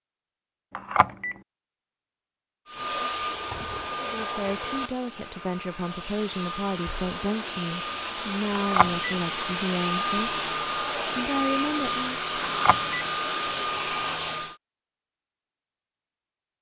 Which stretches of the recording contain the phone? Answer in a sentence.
You can hear the phone from 0.8 to 1.4 s, from 8.6 to 9.2 s and from 12.4 to 13.1 s.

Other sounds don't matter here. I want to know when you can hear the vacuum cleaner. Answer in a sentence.
You can hear the vacuum cleaner from 2.6 to 14.6 s.